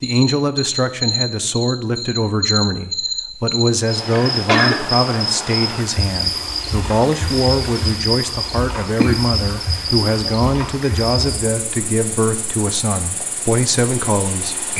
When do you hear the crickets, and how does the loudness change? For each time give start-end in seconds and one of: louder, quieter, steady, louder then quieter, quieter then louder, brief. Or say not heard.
0.0-14.7 quieter.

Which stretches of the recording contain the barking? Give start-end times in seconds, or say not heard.
not heard.